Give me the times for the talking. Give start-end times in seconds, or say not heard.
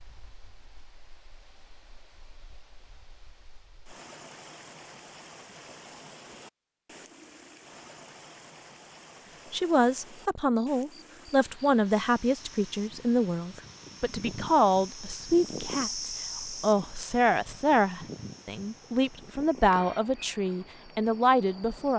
9.5-21.9.